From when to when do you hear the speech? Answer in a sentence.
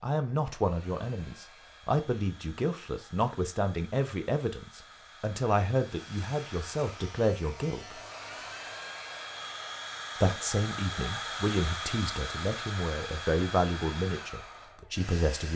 The speech can be heard from 0.0 to 8.0 s and from 10.2 to 15.5 s.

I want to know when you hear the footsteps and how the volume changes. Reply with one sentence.
You can't hear the footsteps here.